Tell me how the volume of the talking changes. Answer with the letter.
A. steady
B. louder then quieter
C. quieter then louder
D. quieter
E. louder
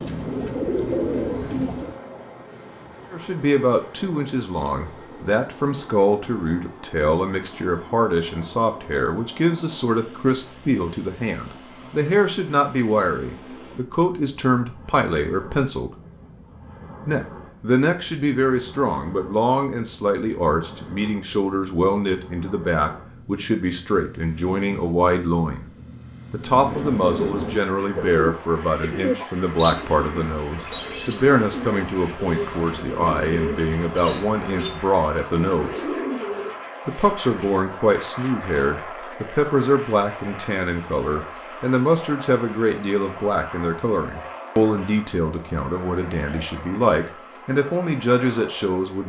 A.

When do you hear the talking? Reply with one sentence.
The talking can be heard from 3.1 to 15.9 s, from 17.1 to 25.6 s, from 26.3 to 36.0 s and from 36.9 to 49.0 s.